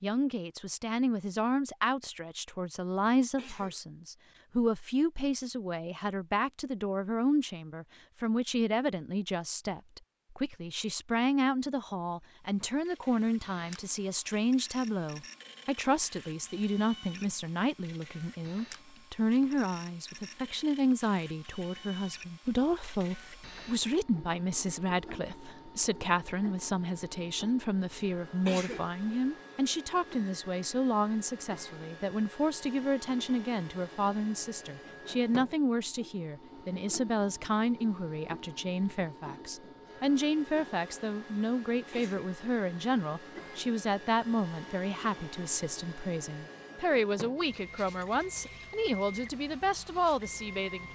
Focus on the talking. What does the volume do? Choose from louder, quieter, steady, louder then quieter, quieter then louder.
steady.